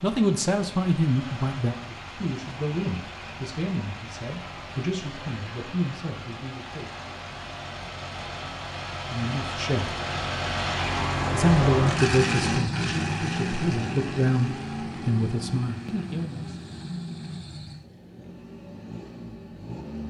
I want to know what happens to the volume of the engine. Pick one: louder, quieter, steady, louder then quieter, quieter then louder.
louder then quieter.